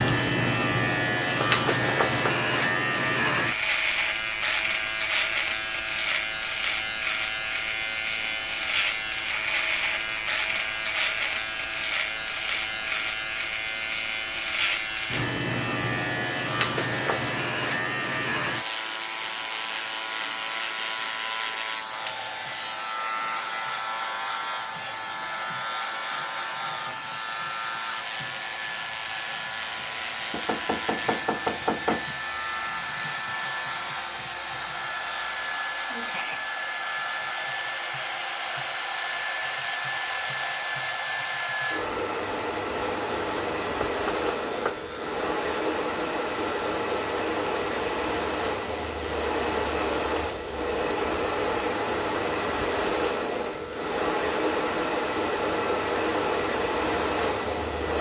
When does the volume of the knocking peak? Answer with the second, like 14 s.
32 s.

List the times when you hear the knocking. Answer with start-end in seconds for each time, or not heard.
1.4-2.4, 30.3-32.0, 43.8-44.8.